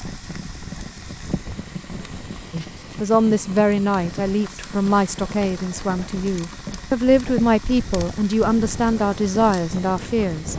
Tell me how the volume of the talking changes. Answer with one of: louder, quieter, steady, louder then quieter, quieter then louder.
steady.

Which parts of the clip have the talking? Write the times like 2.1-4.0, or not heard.
2.5-10.5.